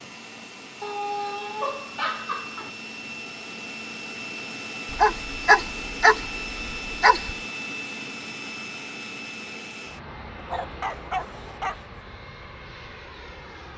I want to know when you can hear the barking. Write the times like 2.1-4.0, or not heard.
0.8-2.7, 4.9-7.3, 10.3-12.0.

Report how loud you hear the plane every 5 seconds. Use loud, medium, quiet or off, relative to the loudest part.
loud, loud, medium.